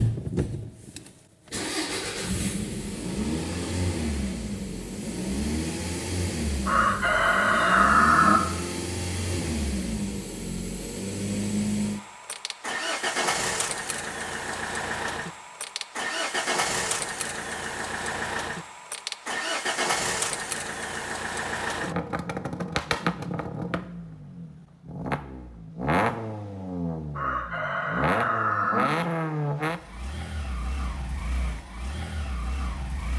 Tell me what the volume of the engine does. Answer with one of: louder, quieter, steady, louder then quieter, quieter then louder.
steady.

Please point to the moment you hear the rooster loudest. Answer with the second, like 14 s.
8 s.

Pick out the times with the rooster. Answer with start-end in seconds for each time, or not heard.
6.7-8.4, 27.1-28.9.